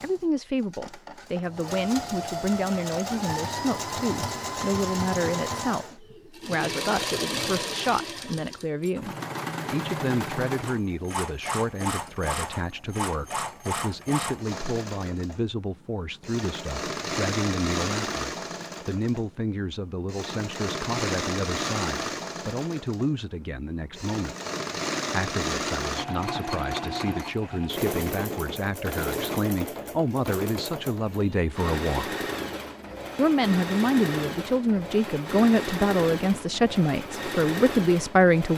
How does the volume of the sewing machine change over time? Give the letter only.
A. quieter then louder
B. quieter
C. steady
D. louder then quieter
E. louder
C.